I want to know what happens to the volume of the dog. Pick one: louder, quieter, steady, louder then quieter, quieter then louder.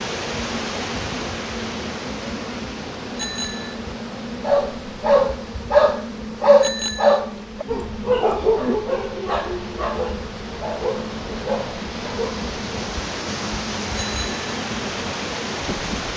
quieter.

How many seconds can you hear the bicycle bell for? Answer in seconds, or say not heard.
2 s.